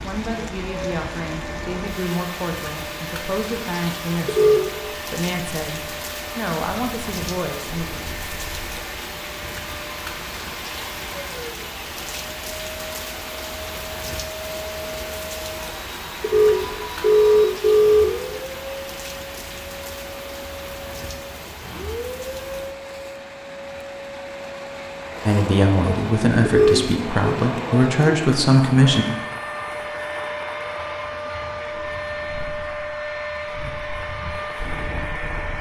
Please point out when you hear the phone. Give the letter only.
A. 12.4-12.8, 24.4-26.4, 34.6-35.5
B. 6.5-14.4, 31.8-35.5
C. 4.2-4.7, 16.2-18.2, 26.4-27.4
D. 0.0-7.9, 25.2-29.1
C.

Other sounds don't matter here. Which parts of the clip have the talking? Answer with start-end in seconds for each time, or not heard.
0.0-7.9, 25.2-29.1.